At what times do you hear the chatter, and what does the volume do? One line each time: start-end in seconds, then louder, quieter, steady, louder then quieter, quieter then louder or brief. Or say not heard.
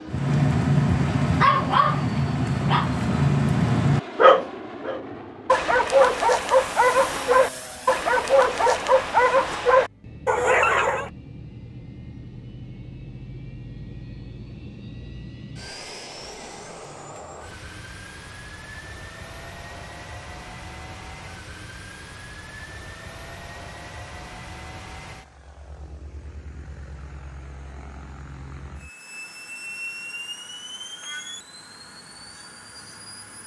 not heard.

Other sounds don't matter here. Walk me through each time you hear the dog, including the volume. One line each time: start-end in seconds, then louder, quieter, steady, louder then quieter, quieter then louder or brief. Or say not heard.
0.1-11.1 steady.